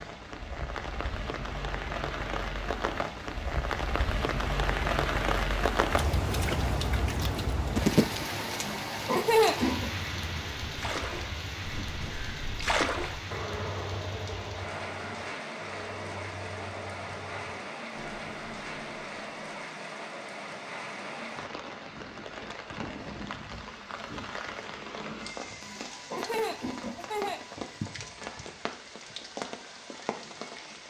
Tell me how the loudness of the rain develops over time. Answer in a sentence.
The loudness of the rain goes down.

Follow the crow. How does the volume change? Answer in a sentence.
The loudness of the crow goes up, then down.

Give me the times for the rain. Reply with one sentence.
You can hear the rain from 0.0 to 30.8 s.